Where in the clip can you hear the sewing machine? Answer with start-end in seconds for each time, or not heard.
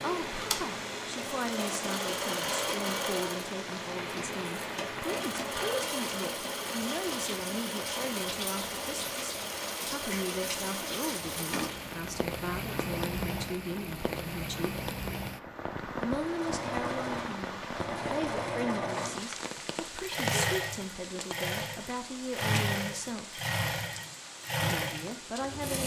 0.0-12.1, 16.1-25.8.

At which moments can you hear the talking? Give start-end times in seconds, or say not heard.
0.0-14.8, 16.0-23.4, 24.6-25.8.